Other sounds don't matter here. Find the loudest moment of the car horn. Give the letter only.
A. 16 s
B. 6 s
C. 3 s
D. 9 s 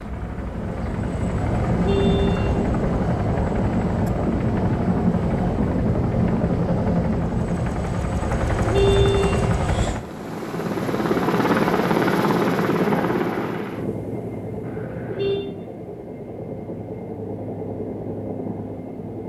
D.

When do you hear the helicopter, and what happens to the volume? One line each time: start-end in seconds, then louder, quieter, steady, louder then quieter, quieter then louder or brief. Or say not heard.
0.0-19.2 quieter.